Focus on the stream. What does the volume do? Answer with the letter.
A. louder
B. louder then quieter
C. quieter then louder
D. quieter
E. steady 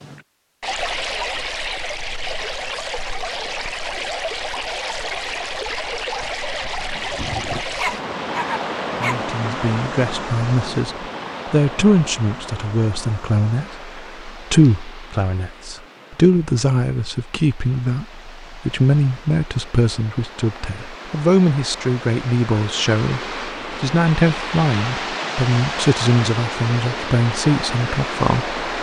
C.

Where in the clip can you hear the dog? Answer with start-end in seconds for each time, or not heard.
7.8-9.2.